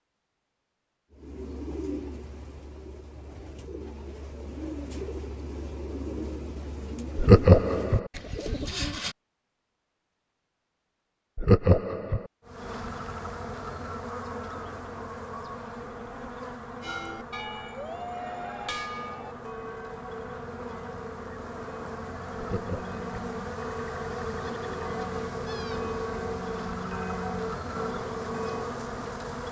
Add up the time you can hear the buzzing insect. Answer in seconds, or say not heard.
17 s.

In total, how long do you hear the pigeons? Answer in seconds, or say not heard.
8 s.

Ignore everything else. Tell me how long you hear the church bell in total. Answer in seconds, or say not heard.
12 s.